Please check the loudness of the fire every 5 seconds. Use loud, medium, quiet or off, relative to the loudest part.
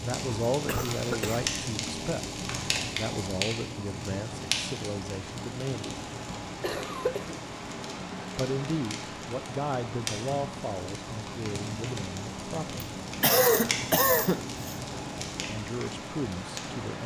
loud, medium, loud, medium.